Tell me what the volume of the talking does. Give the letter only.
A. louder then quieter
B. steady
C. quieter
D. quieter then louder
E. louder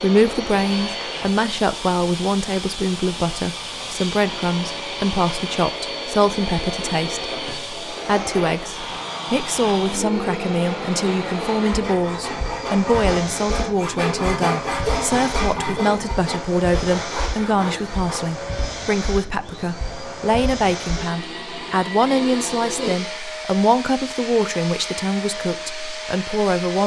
B.